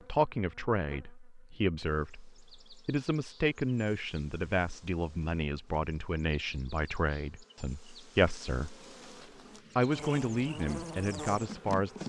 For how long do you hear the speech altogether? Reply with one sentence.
You can hear the speech for 11 seconds altogether.